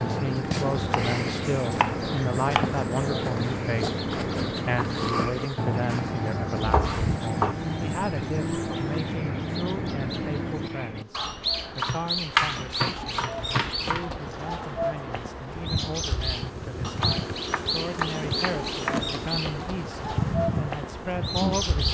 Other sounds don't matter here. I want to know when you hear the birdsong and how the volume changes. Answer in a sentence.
You can hear the birdsong from 0.0 to 21.8 s, at a steady volume.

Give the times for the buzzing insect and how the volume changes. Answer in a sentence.
The buzzing insect can be heard from 0.0 to 21.8 s, getting quieter then louder.